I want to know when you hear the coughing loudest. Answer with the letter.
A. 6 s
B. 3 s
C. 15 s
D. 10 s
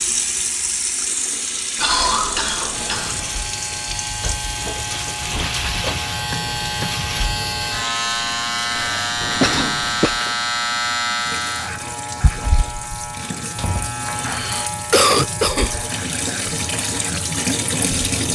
C.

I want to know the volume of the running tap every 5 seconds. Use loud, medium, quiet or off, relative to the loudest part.
loud, medium, medium, loud.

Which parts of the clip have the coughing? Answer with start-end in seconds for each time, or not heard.
1.8-3.1, 8.8-10.2, 14.2-15.8.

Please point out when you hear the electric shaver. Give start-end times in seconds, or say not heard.
2.7-18.3.